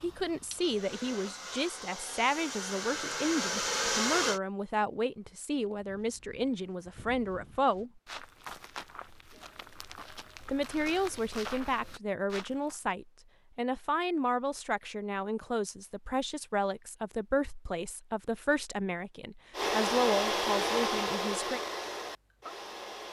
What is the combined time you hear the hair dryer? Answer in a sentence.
You can hear the hair dryer for 8 seconds altogether.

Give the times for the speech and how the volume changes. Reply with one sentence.
You can hear the speech from 0.0 to 8.0 s, at a steady volume; and from 10.4 to 21.6 s, at a steady volume.